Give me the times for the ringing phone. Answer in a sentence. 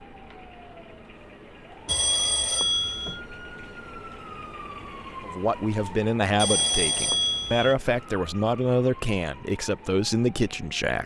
The ringing phone can be heard from 1.9 to 3.2 s and from 6.3 to 7.8 s.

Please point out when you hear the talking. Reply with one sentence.
The talking can be heard from 5.2 to 11.0 s.